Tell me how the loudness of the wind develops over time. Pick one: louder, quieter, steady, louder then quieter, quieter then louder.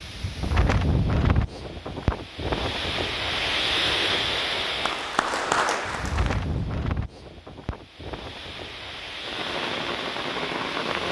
quieter.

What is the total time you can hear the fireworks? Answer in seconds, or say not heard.
2 s.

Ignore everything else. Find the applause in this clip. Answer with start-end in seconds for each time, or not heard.
4.7-6.8.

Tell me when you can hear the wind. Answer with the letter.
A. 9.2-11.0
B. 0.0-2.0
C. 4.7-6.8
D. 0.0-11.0
D.